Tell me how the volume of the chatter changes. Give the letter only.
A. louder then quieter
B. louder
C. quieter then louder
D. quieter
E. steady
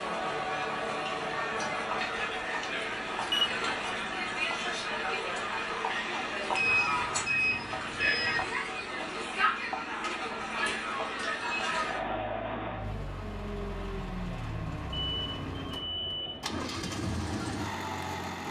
D.